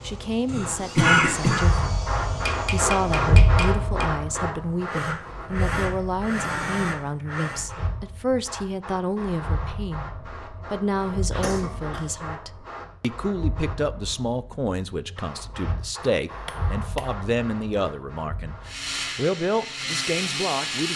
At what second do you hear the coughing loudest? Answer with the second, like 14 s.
1 s.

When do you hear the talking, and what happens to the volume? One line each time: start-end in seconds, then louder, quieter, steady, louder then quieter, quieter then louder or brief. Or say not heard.
0.0-2.0 brief
2.7-18.6 steady
19.1-20.9 brief.